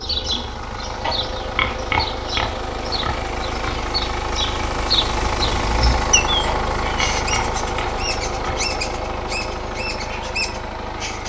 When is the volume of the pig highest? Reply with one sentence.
The loudest moment of the pig is at 2 seconds.